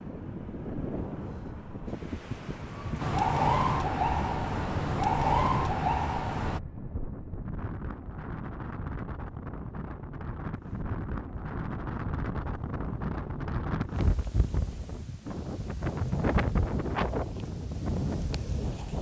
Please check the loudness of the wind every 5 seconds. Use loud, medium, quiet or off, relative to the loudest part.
medium, medium, loud, loud.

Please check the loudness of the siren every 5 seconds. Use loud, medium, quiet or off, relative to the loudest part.
loud, loud, off, off.